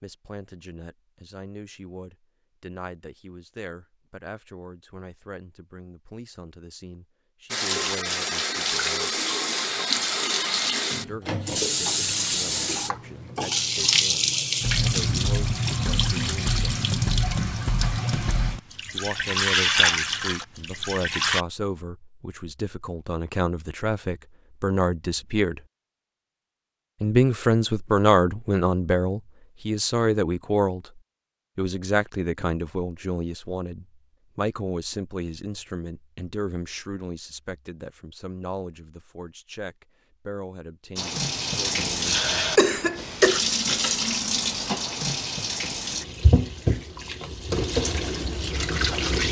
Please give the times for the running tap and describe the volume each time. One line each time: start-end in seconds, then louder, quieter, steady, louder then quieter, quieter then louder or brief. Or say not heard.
7.5-21.4 steady
41.0-49.2 steady.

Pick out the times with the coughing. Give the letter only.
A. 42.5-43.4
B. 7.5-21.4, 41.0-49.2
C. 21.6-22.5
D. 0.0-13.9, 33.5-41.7
A.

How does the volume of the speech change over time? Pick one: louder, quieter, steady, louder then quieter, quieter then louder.
louder then quieter.